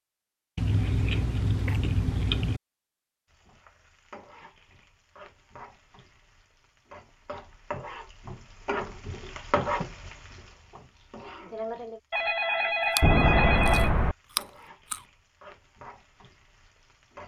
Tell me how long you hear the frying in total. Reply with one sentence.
You can hear the frying for 14 seconds altogether.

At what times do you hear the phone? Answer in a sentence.
You can hear the phone from 12.1 to 14.2 s.